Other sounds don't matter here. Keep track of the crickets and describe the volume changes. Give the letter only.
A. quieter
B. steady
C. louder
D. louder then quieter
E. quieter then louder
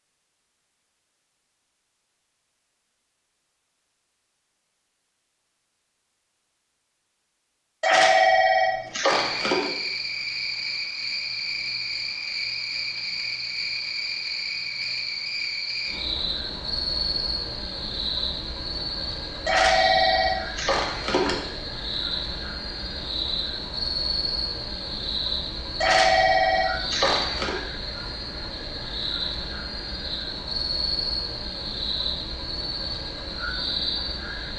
B.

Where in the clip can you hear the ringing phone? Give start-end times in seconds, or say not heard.
7.8-9.7, 19.4-21.4, 25.8-27.6.